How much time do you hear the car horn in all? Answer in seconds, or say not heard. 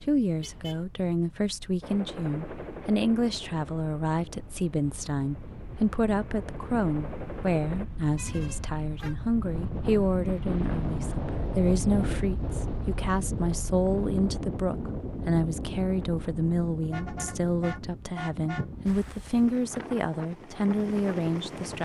3 s.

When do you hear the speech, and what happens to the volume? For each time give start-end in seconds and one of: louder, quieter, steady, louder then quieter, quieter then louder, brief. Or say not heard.
0.0-21.8 steady.